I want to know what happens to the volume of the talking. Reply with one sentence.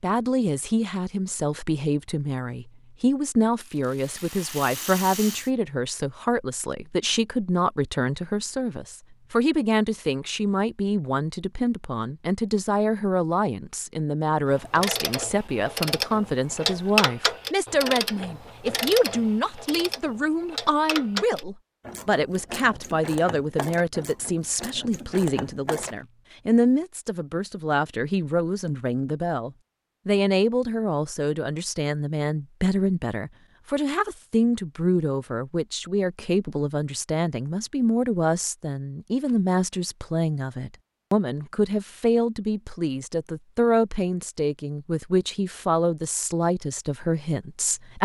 The volume of the talking stays about the same.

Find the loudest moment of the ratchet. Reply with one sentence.
The volume of the ratchet peaks at 17 seconds.